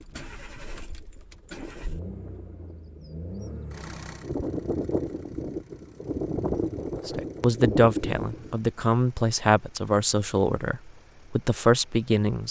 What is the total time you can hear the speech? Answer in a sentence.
You can hear the speech for 5 seconds altogether.